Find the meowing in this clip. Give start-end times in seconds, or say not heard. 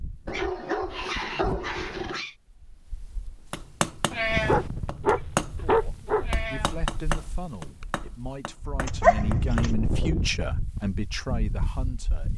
4.1-4.7, 6.2-6.8.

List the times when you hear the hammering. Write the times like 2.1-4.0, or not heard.
3.5-9.8.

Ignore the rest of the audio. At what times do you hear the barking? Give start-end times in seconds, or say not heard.
0.2-2.3, 4.5-6.2, 8.8-9.7.